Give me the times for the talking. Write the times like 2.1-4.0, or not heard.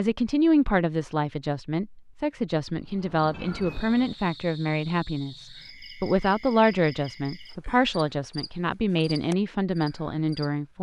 0.0-10.7.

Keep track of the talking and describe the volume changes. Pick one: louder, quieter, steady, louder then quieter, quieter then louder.
steady.